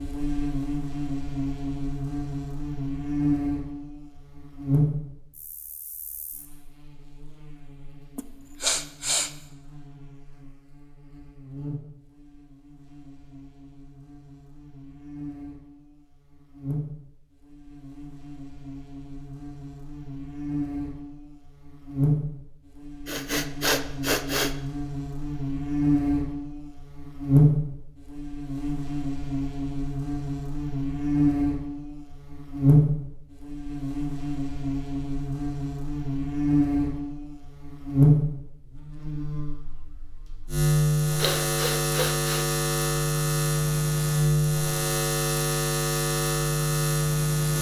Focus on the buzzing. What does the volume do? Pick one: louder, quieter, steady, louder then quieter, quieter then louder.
quieter then louder.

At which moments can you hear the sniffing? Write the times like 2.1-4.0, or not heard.
8.2-9.3, 23.1-24.6, 41.2-42.5.